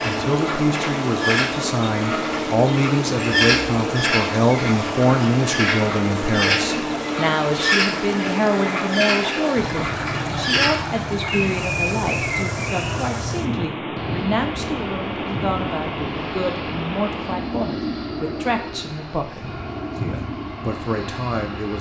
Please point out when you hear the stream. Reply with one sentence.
You can hear the stream from 0.0 to 17.6 s.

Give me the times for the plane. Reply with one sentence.
The plane can be heard from 0.0 to 21.7 s.